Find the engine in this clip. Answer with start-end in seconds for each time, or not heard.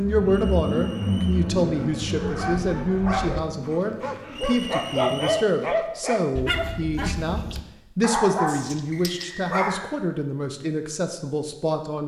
0.0-5.4.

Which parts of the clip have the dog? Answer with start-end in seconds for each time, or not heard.
1.7-9.8.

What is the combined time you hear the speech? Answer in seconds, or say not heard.
12 s.